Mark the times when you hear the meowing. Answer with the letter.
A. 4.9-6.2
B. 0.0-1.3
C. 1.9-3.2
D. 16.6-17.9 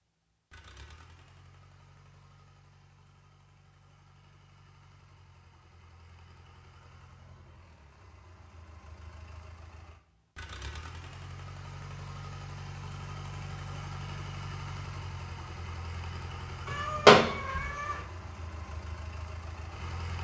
D.